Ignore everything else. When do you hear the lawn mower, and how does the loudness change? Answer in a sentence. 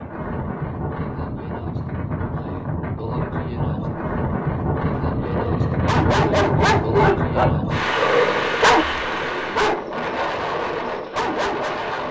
The lawn mower can't be heard in this clip.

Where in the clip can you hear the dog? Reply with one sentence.
You can hear the dog from 5.0 to 11.9 s.